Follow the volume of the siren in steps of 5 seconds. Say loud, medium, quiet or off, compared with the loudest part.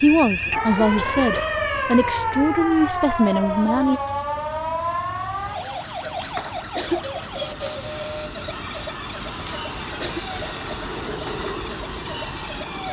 loud, medium, medium.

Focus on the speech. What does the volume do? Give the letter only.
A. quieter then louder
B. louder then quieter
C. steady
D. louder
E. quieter
C.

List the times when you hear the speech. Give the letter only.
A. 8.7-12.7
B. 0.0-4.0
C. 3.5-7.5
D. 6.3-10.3
B.